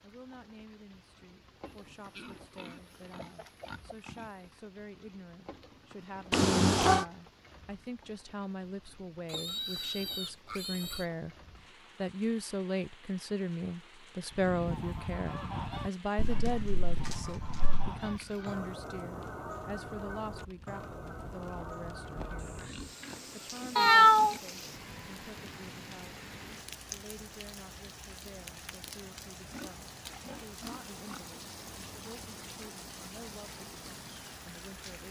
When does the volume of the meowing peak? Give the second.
24 s.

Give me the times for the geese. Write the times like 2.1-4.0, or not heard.
14.3-22.7.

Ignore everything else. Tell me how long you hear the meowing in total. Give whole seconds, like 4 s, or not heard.
3 s.